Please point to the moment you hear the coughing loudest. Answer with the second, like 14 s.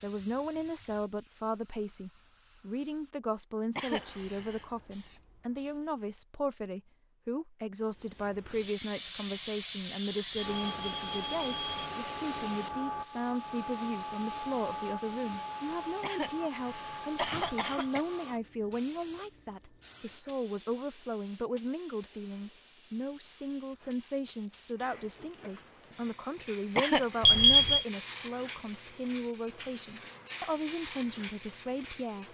27 s.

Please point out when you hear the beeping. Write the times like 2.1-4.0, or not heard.
10.3-11.8, 27.2-27.9.